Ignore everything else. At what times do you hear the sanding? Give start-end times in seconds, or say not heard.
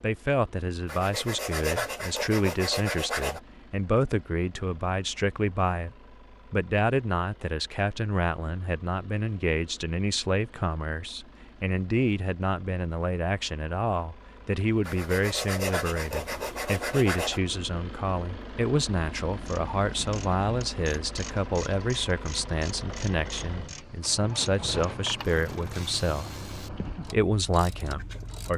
0.8-3.4, 14.8-17.4.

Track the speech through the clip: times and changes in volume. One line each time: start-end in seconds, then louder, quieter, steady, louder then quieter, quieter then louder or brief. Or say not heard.
0.0-28.5 steady.